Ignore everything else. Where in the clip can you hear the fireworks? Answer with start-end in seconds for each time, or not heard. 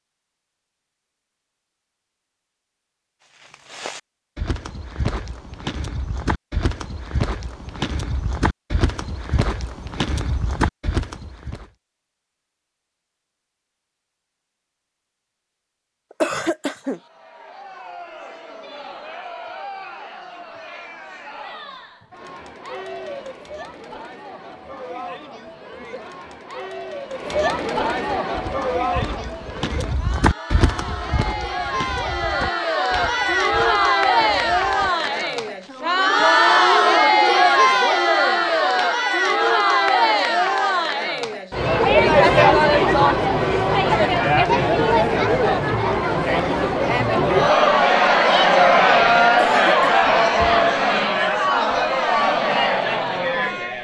not heard.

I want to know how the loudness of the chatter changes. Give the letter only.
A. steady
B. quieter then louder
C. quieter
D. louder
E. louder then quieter
D.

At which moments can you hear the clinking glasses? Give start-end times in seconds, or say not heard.
not heard.